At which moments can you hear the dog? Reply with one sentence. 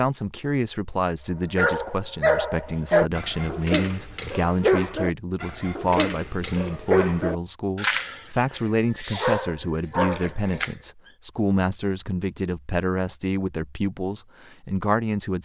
You can hear the dog from 1.6 to 10.8 s.